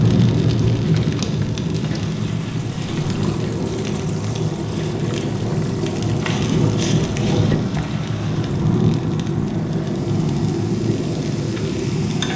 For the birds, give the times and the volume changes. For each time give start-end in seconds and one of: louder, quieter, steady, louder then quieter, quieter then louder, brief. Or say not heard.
not heard.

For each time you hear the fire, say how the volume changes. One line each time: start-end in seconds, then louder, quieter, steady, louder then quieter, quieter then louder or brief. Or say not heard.
0.0-12.3 steady.